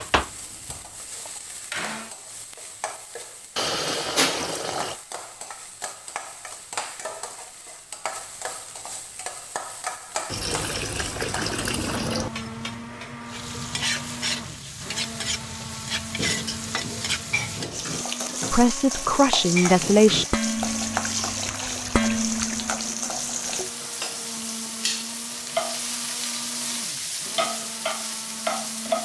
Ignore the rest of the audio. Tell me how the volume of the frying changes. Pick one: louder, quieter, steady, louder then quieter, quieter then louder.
louder.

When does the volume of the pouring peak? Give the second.
4 s.